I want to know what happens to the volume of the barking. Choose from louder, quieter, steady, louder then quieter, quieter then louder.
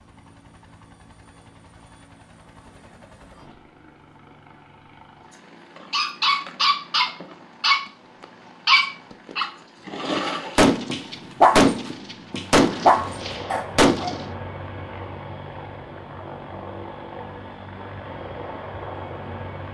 quieter then louder.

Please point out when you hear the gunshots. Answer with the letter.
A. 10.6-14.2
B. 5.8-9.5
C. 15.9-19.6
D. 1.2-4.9
A.